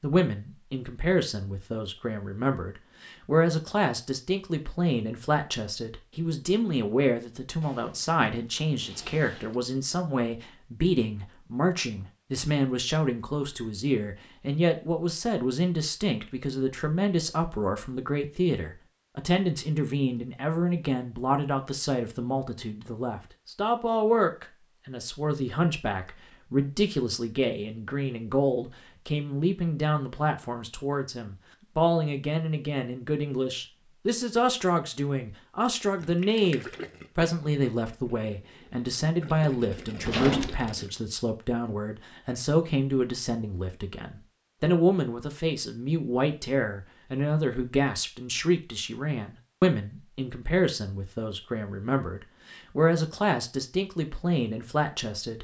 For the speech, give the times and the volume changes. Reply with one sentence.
The speech can be heard from 0.0 to 55.3 s, at a steady volume.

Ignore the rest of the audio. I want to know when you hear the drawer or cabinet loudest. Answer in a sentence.
The volume of the drawer or cabinet peaks at 40 seconds.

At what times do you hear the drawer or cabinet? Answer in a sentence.
The drawer or cabinet can be heard from 7.6 to 9.6 s and from 40.0 to 40.8 s.